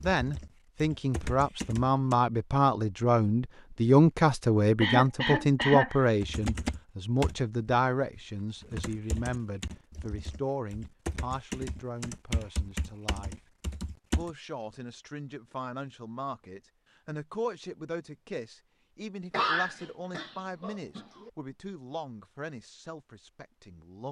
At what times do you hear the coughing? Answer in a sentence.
You can hear the coughing from 4.8 to 6.0 s and from 19.3 to 21.3 s.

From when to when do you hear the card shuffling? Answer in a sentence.
You can't hear the card shuffling here.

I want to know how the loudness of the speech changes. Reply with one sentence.
The volume of the speech goes down.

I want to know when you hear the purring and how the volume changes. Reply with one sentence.
The purring can't be heard in this clip.